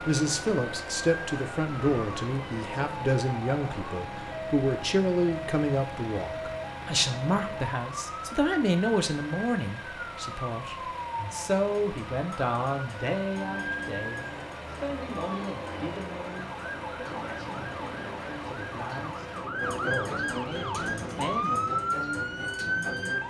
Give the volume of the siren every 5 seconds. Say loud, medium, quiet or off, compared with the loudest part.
medium, medium, medium, medium, loud.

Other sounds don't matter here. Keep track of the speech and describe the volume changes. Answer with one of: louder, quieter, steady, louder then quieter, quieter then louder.
quieter.